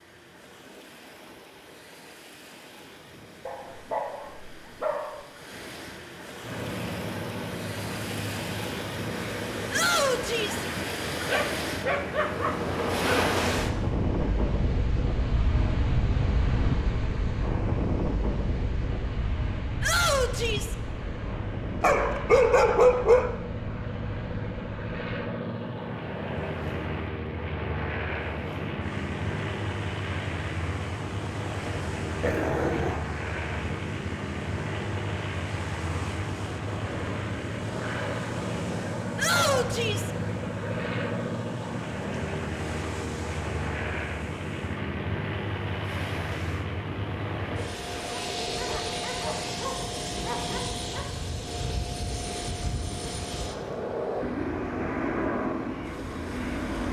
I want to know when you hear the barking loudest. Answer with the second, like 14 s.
23 s.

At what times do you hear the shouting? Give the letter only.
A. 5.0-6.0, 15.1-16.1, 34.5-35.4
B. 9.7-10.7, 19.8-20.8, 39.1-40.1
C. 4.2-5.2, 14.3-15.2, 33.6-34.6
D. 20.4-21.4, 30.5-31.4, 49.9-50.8
B.